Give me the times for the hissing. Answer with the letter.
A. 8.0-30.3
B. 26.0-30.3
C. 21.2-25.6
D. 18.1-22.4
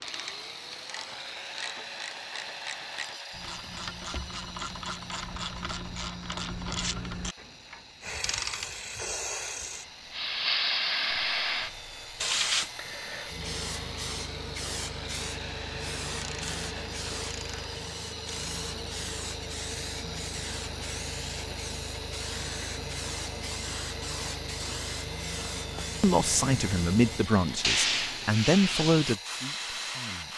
A.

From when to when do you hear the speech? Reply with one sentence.
The speech can be heard from 26.0 to 30.3 s.